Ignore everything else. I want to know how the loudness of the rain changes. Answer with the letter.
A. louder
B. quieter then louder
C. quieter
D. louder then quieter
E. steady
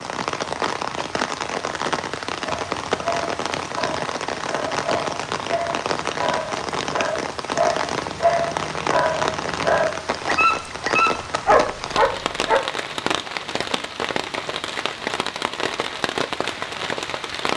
E.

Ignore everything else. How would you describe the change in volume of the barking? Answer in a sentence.
The loudness of the barking goes up.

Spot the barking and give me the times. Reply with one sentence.
The barking can be heard from 2.5 to 12.6 s.